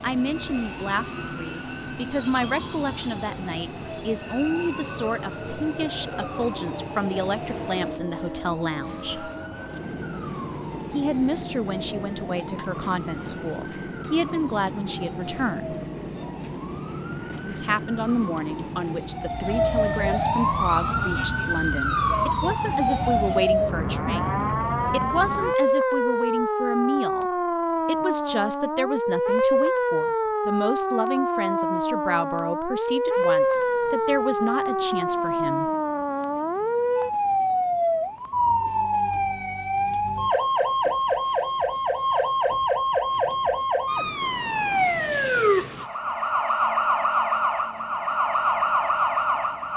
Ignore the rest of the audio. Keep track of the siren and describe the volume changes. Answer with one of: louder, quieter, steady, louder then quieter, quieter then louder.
louder.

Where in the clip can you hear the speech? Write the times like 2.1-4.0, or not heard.
0.0-9.3, 10.9-15.8, 17.4-35.7.